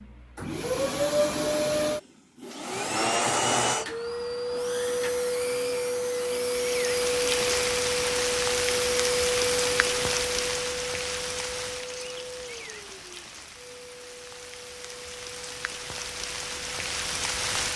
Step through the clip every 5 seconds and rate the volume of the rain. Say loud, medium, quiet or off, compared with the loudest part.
off, loud, medium, loud.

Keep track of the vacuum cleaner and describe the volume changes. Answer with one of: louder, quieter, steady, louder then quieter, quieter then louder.
quieter.